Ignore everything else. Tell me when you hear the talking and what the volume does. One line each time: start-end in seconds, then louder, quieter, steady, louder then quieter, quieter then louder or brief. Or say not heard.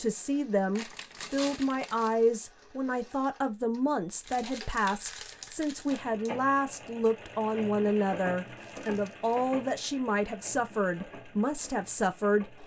0.0-12.6 steady.